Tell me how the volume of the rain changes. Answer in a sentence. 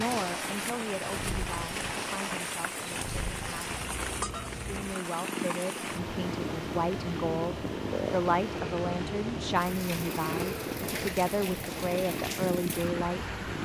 The volume of the rain stays about the same.